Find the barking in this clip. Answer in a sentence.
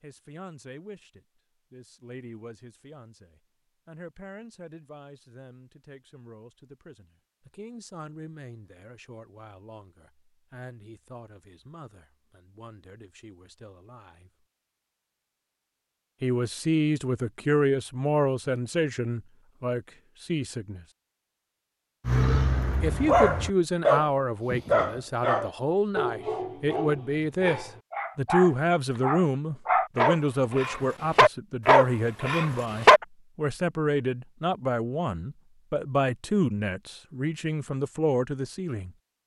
The barking can be heard from 22.1 to 33.0 s.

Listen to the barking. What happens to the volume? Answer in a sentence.
The volume of the barking goes down, then up.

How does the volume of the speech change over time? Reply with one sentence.
The loudness of the speech goes up.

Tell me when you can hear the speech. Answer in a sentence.
You can hear the speech from 0.0 to 14.4 s, from 16.2 to 20.9 s and from 22.8 to 38.9 s.